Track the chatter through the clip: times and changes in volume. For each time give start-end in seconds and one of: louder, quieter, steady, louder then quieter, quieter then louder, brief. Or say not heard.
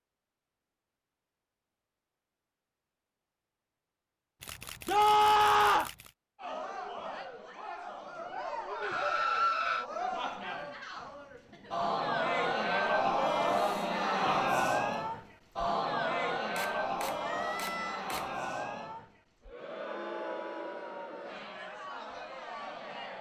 6.3-23.1 louder then quieter.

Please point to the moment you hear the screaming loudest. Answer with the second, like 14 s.
5 s.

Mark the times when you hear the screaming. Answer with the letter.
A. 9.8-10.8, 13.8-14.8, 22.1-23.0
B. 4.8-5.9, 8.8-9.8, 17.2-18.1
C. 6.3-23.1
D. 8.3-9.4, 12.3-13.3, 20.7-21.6
B.